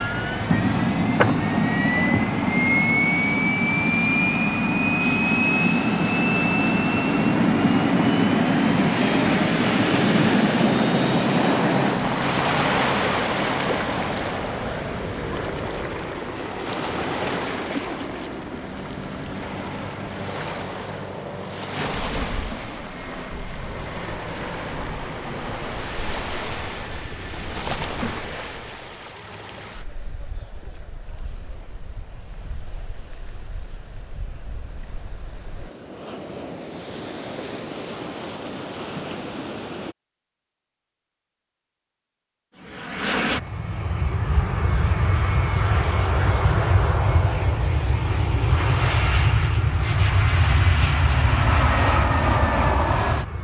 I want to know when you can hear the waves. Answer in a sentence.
The waves can be heard from 0.0 to 40.0 s.